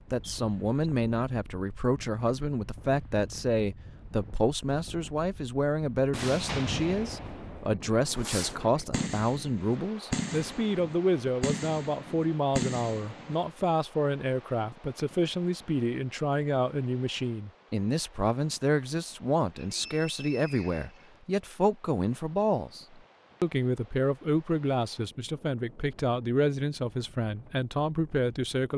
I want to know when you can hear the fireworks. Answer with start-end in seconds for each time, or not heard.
6.1-13.3.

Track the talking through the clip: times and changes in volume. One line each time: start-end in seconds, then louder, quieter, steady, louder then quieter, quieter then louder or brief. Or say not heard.
0.1-28.7 steady.